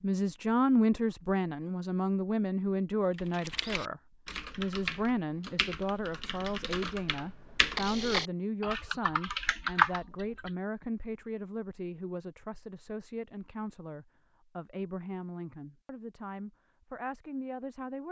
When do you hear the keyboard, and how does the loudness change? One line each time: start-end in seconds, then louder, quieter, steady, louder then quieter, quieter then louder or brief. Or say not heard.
3.1-10.5 louder.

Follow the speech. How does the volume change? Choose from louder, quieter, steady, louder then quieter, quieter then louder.
quieter.